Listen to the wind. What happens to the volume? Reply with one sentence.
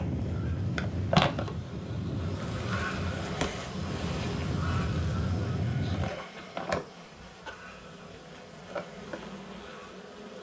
The loudness of the wind goes down, then up.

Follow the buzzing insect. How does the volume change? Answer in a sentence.
The loudness of the buzzing insect goes down.